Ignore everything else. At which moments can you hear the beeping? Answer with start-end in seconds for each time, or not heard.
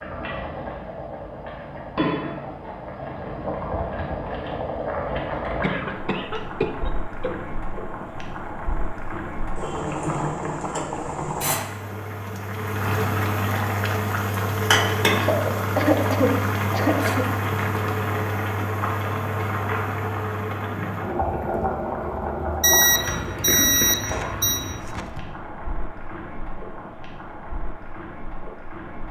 22.6-24.6.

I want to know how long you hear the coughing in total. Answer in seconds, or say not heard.
6 s.